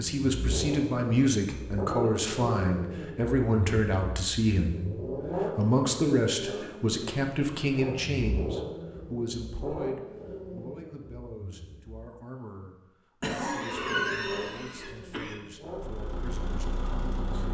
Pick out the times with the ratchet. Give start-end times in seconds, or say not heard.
not heard.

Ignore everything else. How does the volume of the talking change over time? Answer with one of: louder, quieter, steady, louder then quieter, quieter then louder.
quieter.